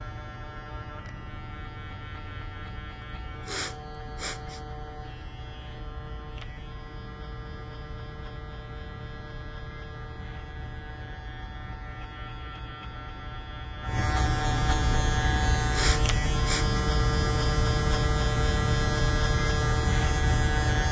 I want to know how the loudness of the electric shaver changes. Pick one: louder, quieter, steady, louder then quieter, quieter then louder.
louder.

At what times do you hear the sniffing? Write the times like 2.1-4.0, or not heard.
3.5-4.6, 15.7-16.8.